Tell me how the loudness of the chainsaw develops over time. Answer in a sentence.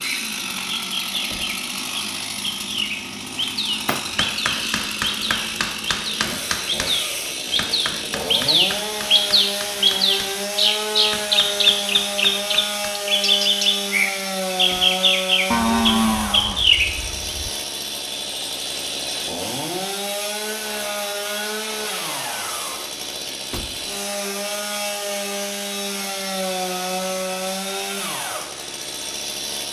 The volume of the chainsaw stays about the same.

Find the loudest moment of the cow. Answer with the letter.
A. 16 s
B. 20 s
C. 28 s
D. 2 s
A.